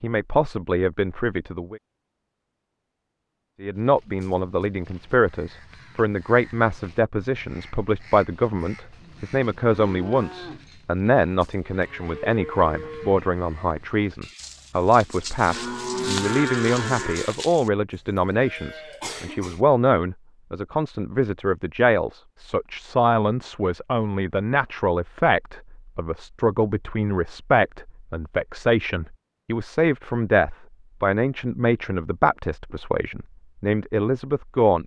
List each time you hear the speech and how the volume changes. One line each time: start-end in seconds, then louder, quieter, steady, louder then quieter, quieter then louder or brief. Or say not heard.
0.0-1.8 brief
3.6-34.8 steady.